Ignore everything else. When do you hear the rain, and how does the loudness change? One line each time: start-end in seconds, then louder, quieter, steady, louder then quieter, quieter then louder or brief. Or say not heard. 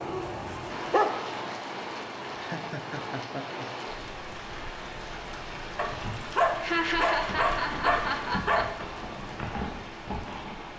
0.0-10.7 steady.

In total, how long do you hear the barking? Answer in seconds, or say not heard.
4 s.